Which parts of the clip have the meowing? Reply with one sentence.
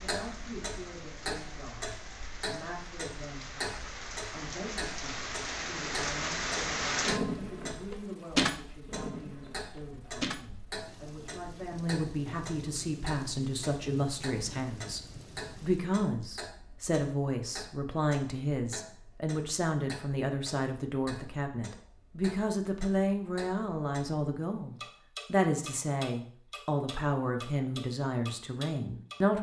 The meowing can't be heard in this clip.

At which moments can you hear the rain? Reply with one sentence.
You can hear the rain from 0.0 to 15.9 s.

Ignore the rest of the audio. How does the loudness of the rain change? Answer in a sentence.
The volume of the rain goes up, then down.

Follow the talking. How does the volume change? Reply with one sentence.
The volume of the talking goes up.